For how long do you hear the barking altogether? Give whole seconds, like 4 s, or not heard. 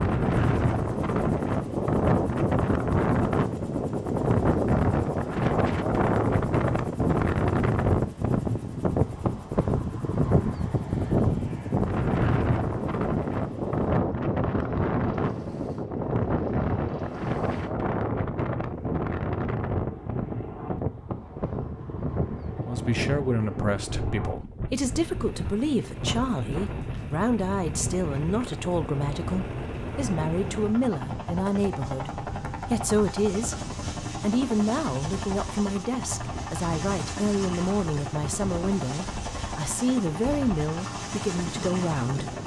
not heard.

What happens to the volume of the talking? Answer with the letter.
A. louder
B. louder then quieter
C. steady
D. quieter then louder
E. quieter
C.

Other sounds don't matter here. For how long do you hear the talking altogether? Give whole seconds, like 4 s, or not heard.
20 s.